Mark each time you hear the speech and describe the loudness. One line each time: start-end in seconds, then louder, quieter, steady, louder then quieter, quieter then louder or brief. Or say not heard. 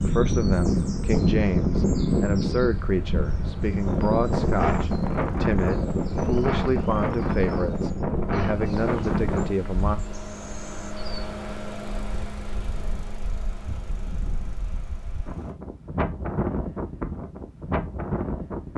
0.0-10.0 steady.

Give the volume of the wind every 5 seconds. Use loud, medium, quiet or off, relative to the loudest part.
loud, loud, quiet, medium.